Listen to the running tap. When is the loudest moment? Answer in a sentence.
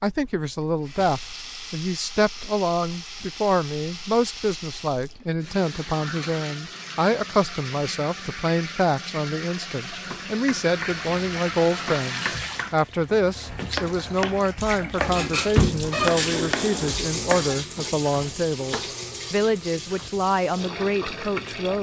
The volume of the running tap peaks at 16 seconds.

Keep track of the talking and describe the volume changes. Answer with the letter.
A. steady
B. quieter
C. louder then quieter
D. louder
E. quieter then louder
A.